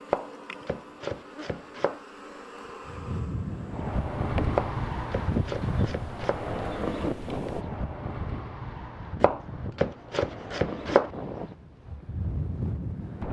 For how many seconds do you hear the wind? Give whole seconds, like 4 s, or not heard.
10 s.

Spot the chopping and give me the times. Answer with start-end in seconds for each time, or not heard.
0.1-2.0, 4.5-6.4, 9.2-11.1.